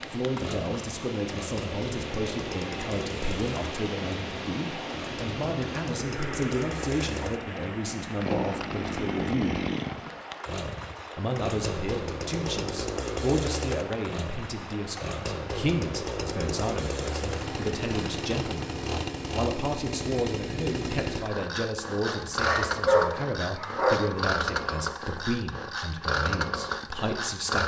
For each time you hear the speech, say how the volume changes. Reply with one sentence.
The speech can be heard from 0.1 to 9.6 s, at a steady volume; and from 11.2 to 27.6 s, at a steady volume.